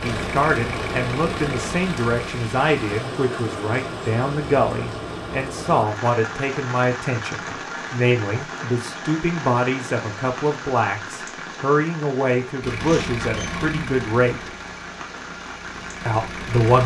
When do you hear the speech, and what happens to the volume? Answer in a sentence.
You can hear the speech from 0.0 to 14.5 s, at a steady volume; and briefly from 16.1 to 16.8 s.